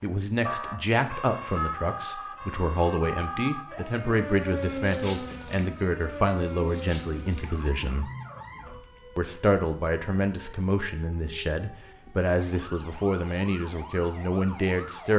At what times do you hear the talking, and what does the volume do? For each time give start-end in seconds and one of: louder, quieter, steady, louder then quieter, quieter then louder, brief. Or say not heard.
0.0-8.1 steady
9.2-15.1 steady.